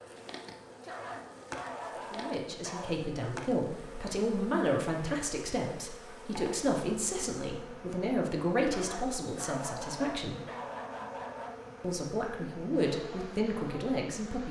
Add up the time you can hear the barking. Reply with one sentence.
You can hear the barking for 5 seconds altogether.